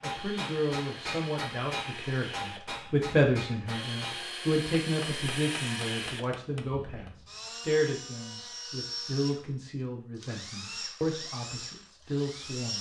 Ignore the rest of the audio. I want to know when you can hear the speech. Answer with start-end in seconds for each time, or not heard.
0.0-12.7.